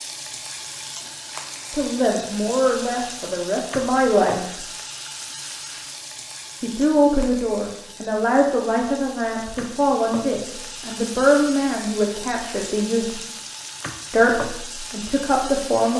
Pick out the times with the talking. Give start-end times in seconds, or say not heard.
1.7-4.6, 6.6-13.1, 14.1-15.9.